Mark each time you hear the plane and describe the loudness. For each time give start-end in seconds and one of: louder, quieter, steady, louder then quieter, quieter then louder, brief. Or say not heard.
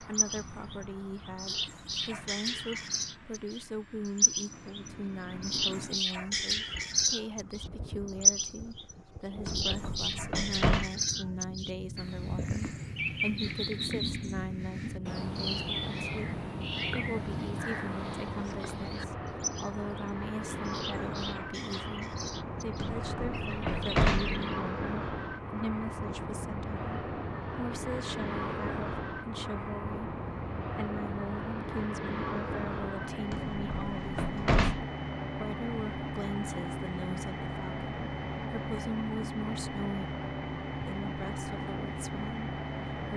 0.0-43.1 louder.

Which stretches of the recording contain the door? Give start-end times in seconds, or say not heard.
9.4-10.9, 22.8-24.4, 33.3-34.9.